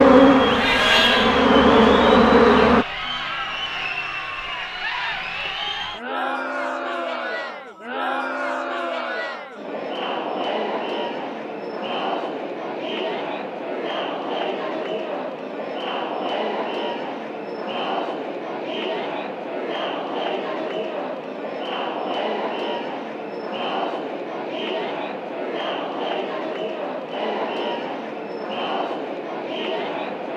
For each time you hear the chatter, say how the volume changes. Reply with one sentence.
The chatter can be heard from 0.1 to 30.3 s, at a steady volume.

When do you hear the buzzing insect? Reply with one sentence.
You can hear the buzzing insect from 0.0 to 2.9 s.